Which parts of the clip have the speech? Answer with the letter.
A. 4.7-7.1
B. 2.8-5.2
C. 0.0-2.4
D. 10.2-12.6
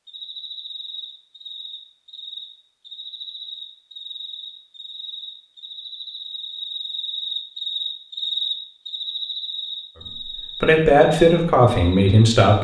D.